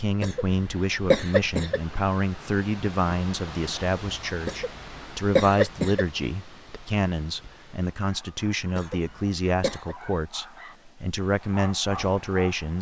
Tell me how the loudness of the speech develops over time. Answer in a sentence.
The loudness of the speech stays about the same.